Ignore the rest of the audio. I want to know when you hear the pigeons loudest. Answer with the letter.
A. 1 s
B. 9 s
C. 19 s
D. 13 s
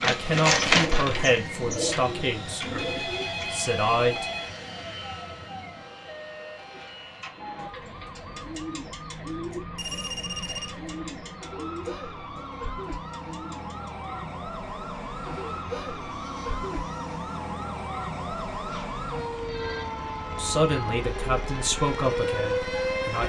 A.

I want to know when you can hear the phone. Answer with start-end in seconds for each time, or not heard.
2.8-4.5, 9.8-10.8, 18.6-19.9.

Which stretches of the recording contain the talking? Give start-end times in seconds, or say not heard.
0.0-2.9, 3.5-4.3, 20.4-23.2.